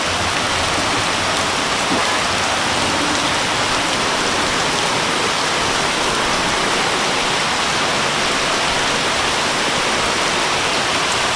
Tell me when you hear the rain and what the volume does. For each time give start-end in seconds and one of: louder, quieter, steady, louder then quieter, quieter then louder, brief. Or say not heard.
0.0-11.3 steady.